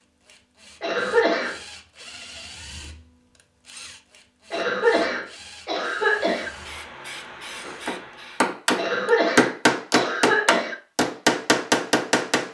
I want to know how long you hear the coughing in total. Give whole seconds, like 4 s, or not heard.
5 s.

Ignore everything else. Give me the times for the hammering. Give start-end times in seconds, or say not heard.
7.6-12.4.